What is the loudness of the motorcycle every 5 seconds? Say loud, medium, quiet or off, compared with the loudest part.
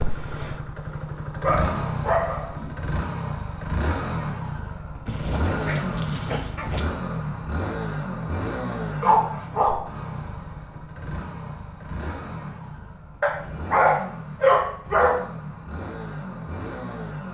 loud, loud, medium, medium.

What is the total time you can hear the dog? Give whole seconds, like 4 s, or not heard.
6 s.